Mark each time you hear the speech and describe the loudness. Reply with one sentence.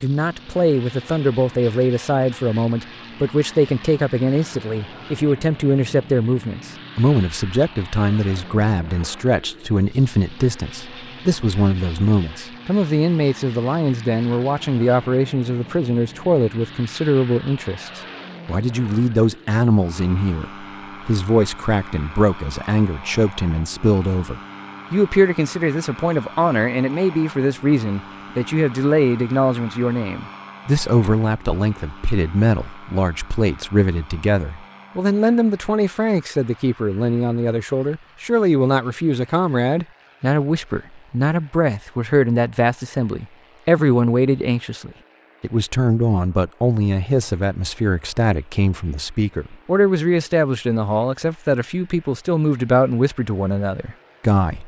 The speech can be heard from 0.0 to 54.6 s, at a steady volume.